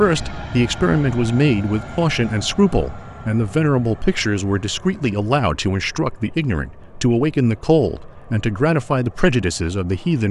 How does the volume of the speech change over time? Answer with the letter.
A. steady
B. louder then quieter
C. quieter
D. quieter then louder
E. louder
A.